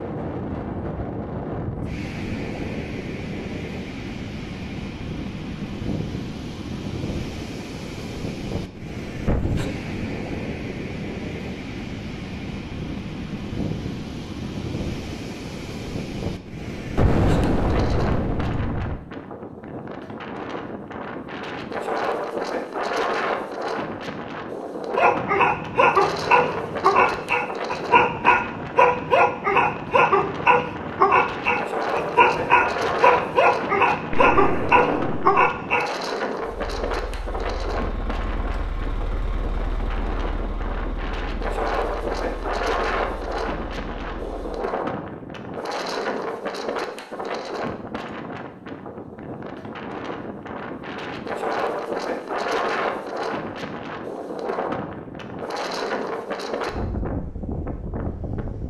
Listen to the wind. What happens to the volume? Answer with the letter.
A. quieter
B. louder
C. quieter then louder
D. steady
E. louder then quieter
D.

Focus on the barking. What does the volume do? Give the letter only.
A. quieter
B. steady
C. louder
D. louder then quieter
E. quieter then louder
B.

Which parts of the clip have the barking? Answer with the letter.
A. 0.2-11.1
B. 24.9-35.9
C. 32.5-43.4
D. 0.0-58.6
B.